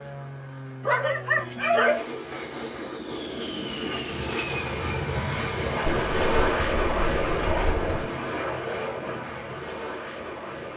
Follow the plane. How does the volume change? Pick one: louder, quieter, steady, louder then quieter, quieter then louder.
louder then quieter.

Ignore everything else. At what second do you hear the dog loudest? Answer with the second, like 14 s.
2 s.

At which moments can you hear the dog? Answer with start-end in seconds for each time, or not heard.
0.8-2.0, 6.0-8.1.